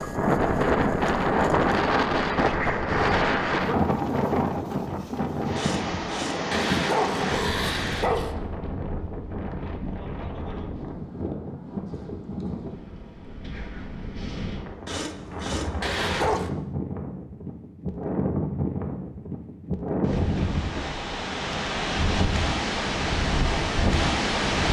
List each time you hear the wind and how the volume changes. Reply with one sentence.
You can hear the wind from 0.0 to 24.6 s, getting quieter then louder.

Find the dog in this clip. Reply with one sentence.
You can hear the dog from 5.5 to 8.3 s and from 14.8 to 16.5 s.